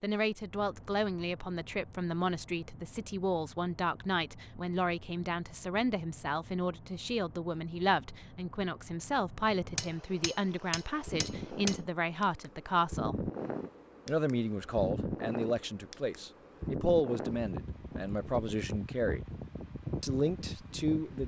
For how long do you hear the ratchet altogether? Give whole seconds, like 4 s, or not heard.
not heard.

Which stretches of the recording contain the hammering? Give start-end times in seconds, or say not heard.
9.8-11.8.